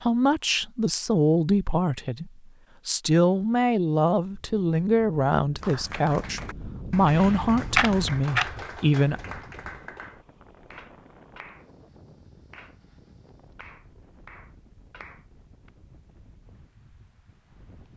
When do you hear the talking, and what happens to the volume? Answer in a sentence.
The talking can be heard from 0.0 to 9.2 s, at a steady volume.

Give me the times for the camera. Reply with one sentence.
You can hear the camera from 7.0 to 8.5 s.